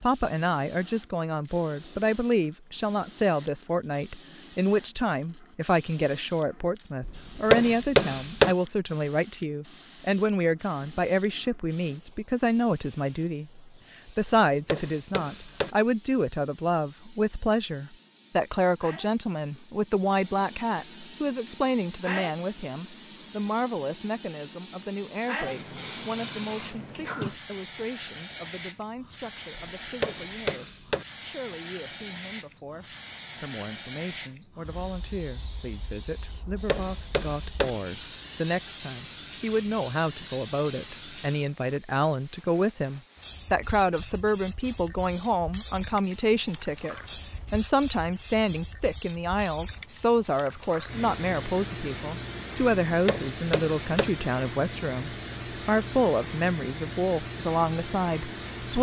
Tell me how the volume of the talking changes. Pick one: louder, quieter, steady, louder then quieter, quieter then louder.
quieter then louder.